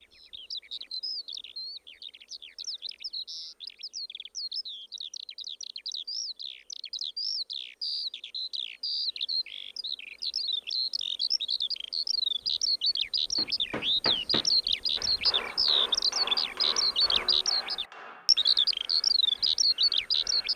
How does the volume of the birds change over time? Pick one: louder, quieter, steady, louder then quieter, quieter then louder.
louder.